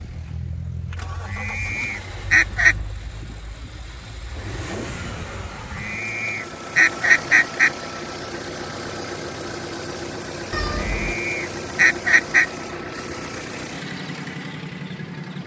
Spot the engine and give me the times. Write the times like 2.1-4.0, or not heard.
0.0-15.4.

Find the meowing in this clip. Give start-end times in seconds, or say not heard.
10.5-11.2.